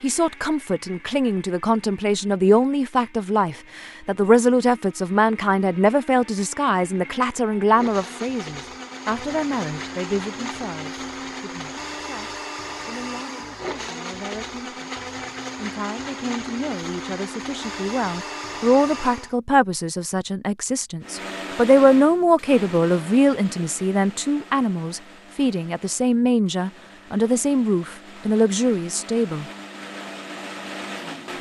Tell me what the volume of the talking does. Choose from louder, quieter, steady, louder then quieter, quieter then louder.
quieter then louder.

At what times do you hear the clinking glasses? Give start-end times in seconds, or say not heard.
not heard.